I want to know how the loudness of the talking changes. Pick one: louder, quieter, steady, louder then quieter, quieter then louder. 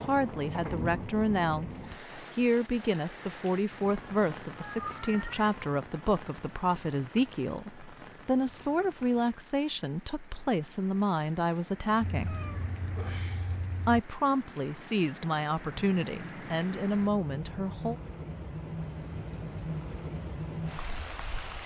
steady.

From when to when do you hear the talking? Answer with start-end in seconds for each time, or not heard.
0.0-12.3, 13.8-17.9.